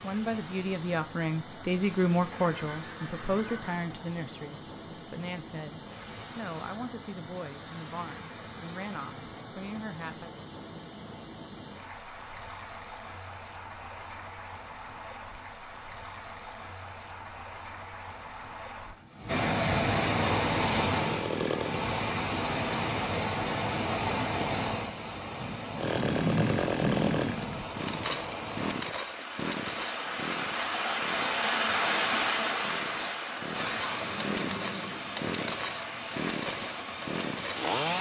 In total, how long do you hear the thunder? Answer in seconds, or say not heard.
2 s.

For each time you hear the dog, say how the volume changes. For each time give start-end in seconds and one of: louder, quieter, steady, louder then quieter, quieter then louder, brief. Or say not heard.
not heard.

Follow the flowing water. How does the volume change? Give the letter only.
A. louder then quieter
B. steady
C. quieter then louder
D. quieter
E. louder
E.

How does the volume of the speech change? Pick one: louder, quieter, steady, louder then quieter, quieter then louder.
quieter.